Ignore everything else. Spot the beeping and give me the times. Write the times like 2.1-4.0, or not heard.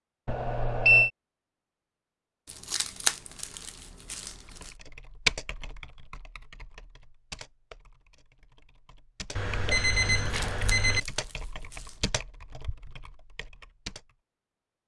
0.2-1.1, 9.3-11.0.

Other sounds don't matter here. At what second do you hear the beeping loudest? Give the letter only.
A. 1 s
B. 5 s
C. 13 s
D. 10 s
A.